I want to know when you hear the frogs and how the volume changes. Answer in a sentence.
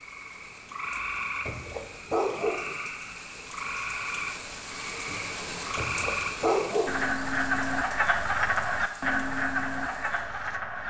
You can hear the frogs from 0.0 to 10.8 s, getting louder.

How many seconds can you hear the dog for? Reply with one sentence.
You can hear the dog for 3 seconds altogether.